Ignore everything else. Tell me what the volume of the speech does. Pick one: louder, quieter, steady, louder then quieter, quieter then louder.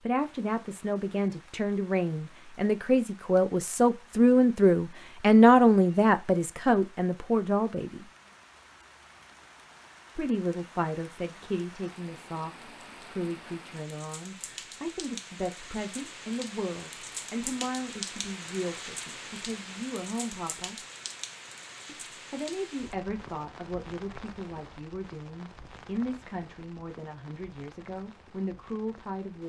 quieter.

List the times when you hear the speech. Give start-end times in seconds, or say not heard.
0.1-8.1, 10.2-20.8, 21.9-29.4.